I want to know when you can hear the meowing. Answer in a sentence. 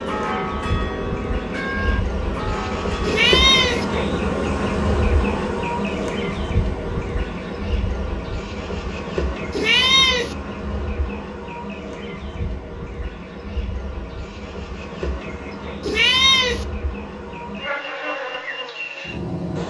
The meowing can be heard from 3.0 to 3.9 s, from 9.5 to 10.3 s and from 15.8 to 16.6 s.